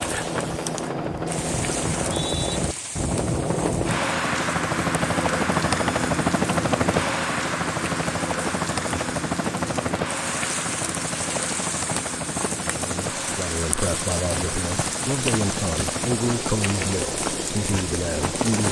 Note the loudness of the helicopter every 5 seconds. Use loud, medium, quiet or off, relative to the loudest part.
loud, loud, medium, medium.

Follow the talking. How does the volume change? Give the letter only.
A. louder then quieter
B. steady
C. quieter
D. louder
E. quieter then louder
B.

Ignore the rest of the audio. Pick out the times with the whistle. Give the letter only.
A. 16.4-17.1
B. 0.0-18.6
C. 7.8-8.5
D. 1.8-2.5
D.